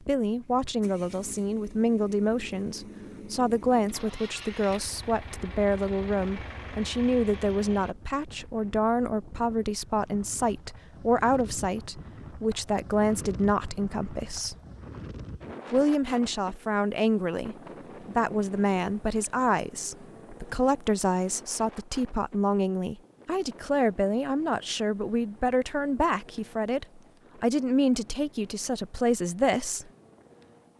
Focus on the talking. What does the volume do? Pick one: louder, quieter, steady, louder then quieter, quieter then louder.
steady.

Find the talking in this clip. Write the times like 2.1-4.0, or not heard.
0.1-14.6, 15.7-29.9.